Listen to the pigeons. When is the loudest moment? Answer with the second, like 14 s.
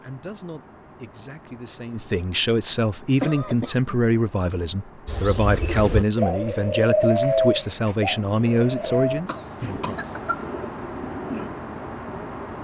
7 s.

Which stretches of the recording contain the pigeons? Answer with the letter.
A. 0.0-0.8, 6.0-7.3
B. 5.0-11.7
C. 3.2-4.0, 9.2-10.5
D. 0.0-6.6
B.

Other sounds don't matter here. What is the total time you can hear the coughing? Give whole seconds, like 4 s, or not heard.
2 s.